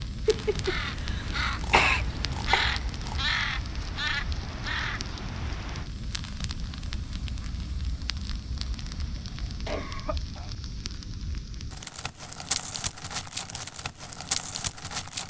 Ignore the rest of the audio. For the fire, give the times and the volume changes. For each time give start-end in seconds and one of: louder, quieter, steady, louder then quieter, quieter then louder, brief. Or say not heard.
0.0-15.2 louder.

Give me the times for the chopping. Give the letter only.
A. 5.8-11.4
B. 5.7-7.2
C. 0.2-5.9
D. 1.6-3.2
D.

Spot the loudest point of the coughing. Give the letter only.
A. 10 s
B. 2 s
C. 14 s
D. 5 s
B.